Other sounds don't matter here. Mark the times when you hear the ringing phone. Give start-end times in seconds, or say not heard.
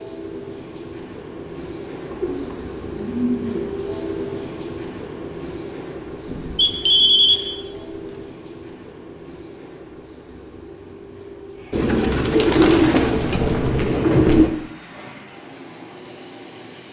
6.5-7.3.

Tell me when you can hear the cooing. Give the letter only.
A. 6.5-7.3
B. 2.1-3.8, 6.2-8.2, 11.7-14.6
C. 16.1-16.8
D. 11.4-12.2
B.